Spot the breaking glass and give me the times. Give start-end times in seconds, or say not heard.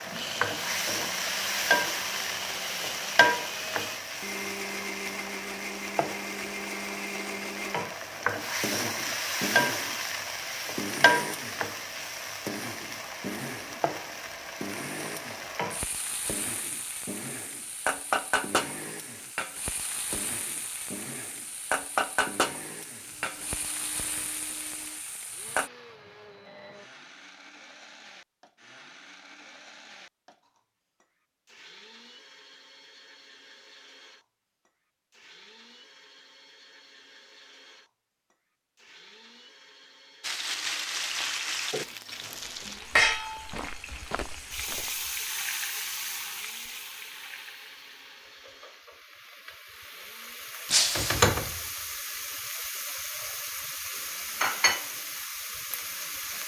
50.6-51.2.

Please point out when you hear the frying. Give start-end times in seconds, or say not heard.
0.0-25.7, 40.2-56.4.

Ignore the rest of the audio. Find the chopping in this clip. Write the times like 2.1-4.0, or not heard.
not heard.